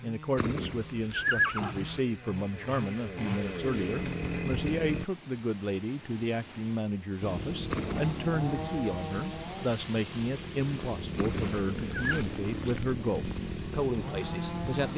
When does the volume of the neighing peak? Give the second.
1 s.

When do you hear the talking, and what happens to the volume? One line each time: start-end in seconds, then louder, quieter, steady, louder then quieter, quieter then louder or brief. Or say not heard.
0.0-14.9 steady.